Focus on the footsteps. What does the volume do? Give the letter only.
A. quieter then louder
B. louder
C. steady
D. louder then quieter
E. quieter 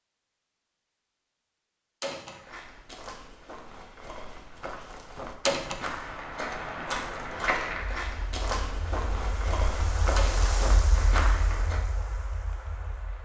B.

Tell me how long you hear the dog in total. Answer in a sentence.
The dog can't be heard in this clip.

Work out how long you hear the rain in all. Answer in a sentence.
The rain can be heard for 7 seconds in total.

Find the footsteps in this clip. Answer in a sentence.
You can hear the footsteps from 2.2 to 11.8 s.